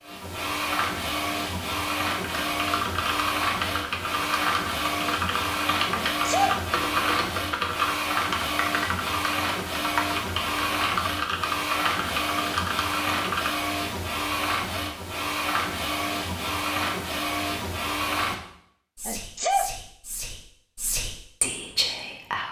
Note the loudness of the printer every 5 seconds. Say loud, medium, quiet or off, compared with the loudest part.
loud, loud, loud, loud, off.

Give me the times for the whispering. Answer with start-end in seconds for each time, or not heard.
18.9-22.4.